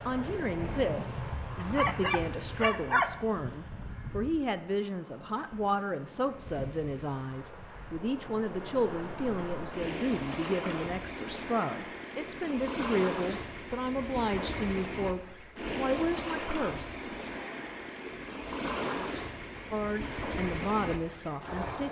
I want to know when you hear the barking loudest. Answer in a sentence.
The loudest moment of the barking is at 3 seconds.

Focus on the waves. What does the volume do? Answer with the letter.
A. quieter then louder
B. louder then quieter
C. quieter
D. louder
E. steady
A.